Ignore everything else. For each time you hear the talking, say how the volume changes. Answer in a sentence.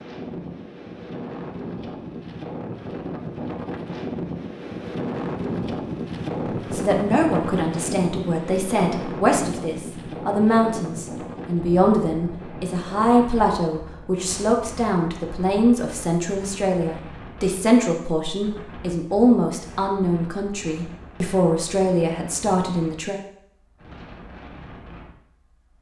The talking can be heard from 6.7 to 23.1 s, at a steady volume.